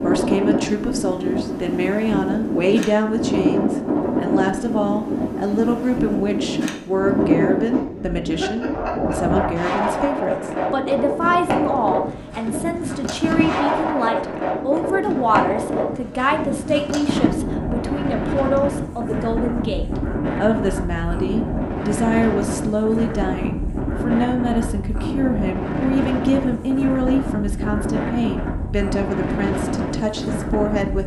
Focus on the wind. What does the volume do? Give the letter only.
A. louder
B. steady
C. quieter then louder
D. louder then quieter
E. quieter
B.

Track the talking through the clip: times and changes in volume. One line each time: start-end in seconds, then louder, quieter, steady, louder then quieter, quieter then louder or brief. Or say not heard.
0.0-31.0 steady.